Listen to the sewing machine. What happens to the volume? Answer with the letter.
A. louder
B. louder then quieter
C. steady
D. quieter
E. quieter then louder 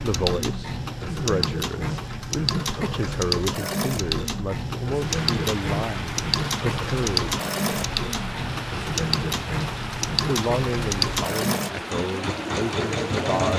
C.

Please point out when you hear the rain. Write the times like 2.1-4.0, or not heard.
4.9-13.5.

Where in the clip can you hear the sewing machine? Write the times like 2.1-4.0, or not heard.
0.0-13.5.